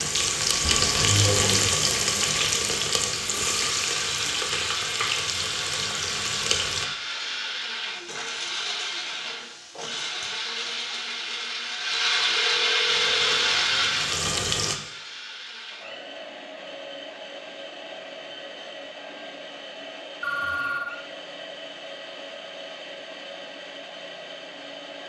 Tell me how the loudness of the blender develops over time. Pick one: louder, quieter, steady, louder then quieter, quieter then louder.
louder then quieter.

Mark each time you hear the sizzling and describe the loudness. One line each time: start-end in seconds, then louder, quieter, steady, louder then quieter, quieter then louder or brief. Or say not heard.
0.0-6.8 quieter
12.8-14.8 brief.